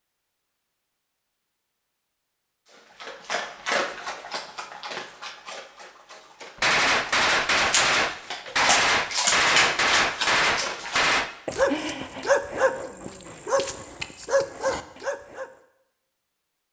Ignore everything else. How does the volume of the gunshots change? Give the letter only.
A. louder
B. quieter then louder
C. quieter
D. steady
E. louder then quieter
D.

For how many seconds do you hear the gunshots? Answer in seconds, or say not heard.
5 s.